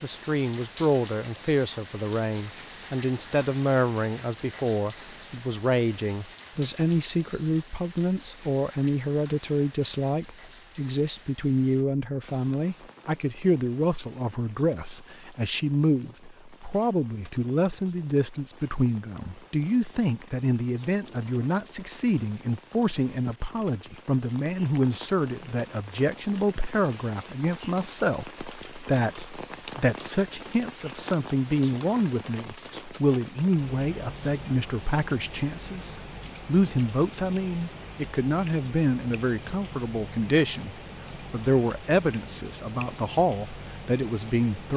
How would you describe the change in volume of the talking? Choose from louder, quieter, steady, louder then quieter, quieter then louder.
steady.